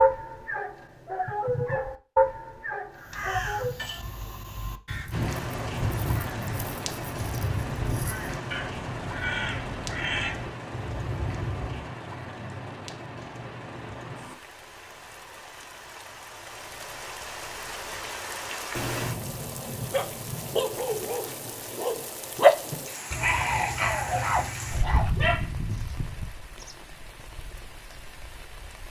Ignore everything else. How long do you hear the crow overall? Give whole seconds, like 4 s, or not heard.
9 s.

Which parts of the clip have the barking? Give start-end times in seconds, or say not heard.
0.0-3.8, 19.9-25.6.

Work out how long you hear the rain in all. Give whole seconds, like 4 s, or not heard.
24 s.